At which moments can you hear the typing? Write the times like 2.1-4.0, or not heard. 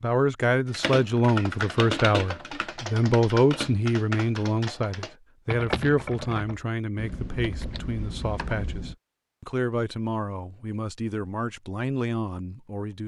0.7-8.9.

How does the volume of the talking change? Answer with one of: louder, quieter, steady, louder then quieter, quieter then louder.
quieter.